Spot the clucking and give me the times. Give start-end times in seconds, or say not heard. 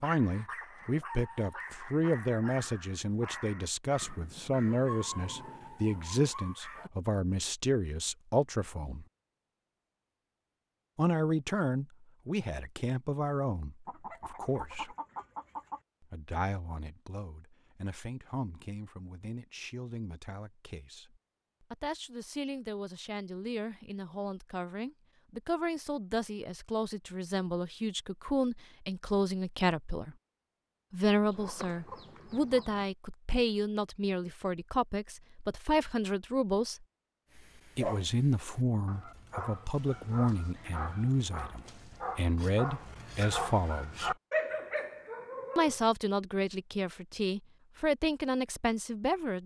13.8-15.8, 31.3-32.9.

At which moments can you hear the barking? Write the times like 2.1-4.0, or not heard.
0.0-6.9, 37.3-45.8.